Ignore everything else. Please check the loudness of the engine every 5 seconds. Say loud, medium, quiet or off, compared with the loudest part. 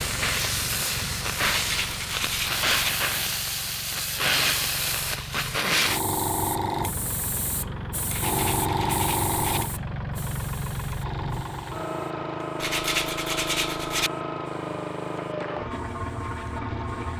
medium, loud, loud, loud.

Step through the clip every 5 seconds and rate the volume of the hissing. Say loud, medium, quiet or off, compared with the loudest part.
loud, loud, quiet, quiet.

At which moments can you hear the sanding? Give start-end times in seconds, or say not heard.
1.5-2.9, 8.1-9.6, 12.6-14.1.